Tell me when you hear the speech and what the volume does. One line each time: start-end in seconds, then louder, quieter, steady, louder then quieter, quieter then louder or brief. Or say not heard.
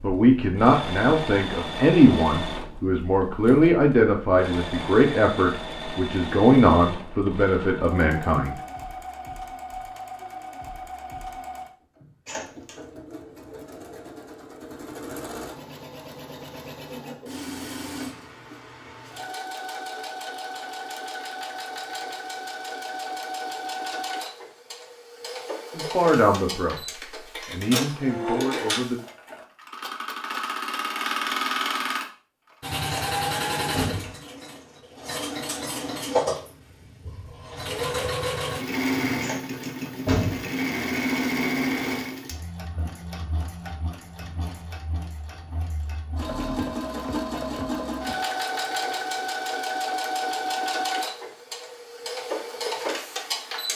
0.0-8.6 steady
25.7-26.8 brief
27.5-29.0 brief.